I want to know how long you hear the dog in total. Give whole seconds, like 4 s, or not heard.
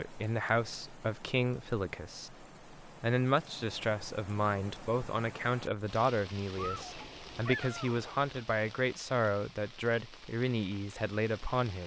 2 s.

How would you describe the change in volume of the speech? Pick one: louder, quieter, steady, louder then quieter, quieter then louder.
steady.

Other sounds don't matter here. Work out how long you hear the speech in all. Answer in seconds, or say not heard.
12 s.